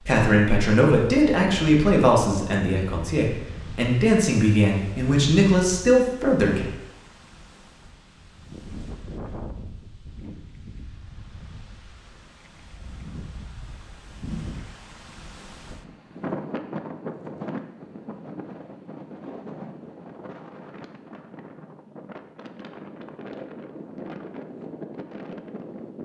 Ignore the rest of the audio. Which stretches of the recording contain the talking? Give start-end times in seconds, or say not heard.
0.0-6.7.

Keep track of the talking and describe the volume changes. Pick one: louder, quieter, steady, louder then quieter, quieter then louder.
quieter then louder.